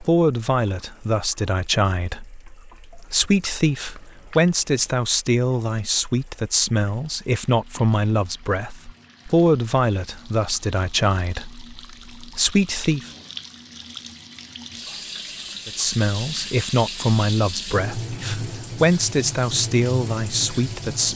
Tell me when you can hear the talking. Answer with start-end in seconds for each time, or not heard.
0.0-13.1, 15.7-21.1.